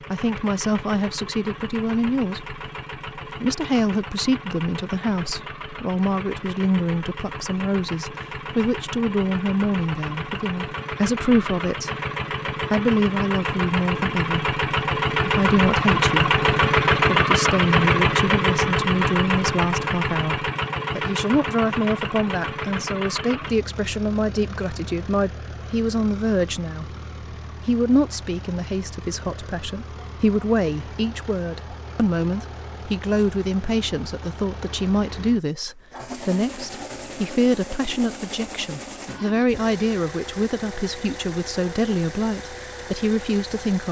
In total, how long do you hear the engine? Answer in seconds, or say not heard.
44 s.